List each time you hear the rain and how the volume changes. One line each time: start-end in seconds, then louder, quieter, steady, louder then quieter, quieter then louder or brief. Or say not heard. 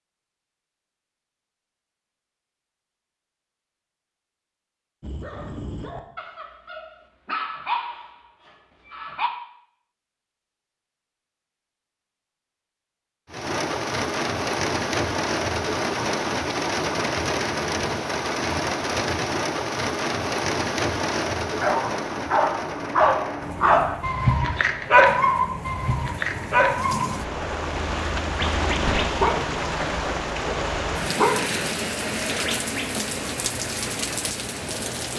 13.3-35.1 quieter then louder.